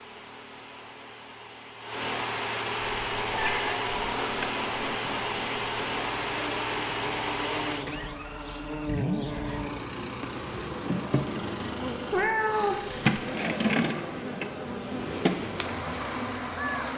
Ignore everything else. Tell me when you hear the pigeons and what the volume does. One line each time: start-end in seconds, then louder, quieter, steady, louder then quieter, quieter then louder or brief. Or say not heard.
not heard.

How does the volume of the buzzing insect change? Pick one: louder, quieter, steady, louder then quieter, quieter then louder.
louder.